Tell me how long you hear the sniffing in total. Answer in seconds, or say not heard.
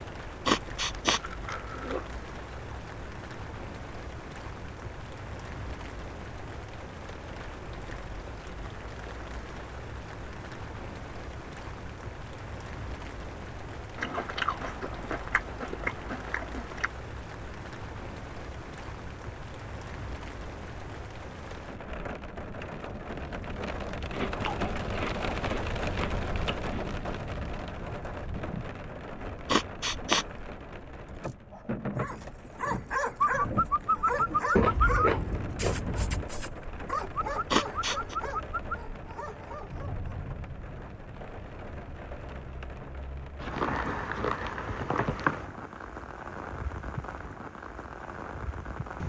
2 s.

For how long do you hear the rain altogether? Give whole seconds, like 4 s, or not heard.
49 s.